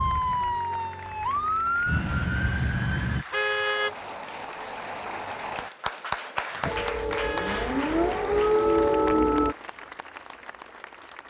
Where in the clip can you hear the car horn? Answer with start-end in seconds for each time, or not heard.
3.3-4.0, 7.2-7.7.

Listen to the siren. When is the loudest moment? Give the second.
9 s.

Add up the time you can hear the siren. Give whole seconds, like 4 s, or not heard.
6 s.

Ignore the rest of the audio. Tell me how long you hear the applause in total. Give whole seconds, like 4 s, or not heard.
11 s.